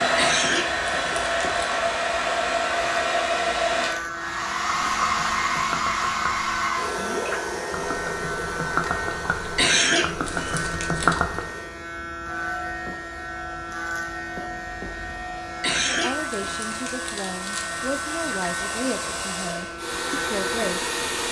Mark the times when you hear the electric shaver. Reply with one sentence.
You can hear the electric shaver from 0.0 to 21.2 s.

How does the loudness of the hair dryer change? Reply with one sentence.
The volume of the hair dryer goes down, then up.